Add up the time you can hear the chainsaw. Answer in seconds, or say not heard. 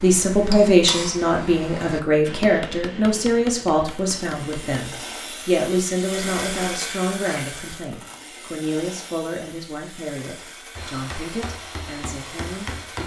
9 s.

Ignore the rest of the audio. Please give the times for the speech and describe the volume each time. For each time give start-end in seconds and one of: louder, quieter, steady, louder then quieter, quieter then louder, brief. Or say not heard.
0.0-13.0 quieter.